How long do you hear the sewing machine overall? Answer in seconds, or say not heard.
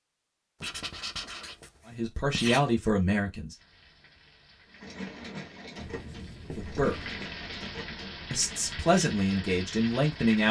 4 s.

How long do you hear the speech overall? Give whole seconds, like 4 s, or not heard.
4 s.